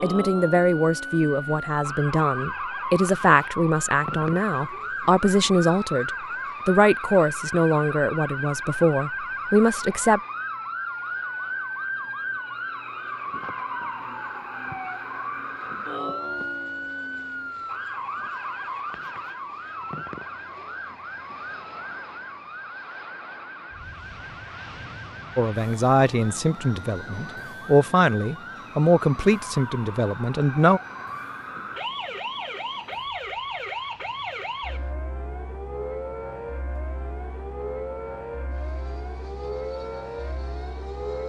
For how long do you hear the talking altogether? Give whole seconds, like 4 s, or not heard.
16 s.